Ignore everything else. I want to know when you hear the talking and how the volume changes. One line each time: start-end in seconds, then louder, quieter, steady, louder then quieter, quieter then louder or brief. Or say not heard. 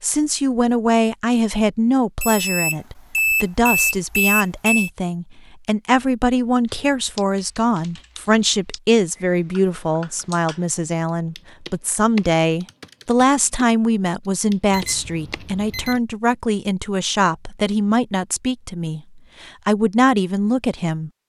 0.0-21.1 steady.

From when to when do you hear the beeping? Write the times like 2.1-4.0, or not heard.
2.2-4.9, 14.7-16.0.